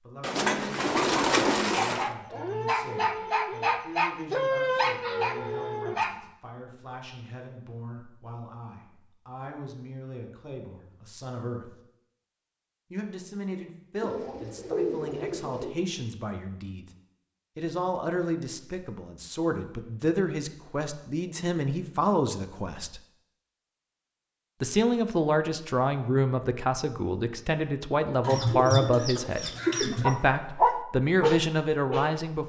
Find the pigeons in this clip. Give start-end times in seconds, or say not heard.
0.2-2.1, 14.0-15.8, 28.2-30.1.